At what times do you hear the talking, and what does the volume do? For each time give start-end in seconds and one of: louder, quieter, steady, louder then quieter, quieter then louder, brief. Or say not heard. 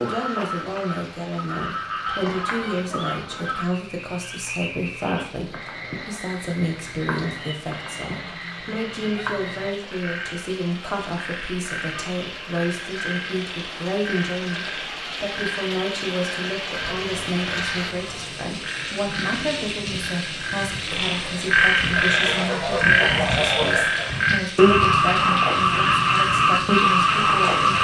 0.0-27.7 steady.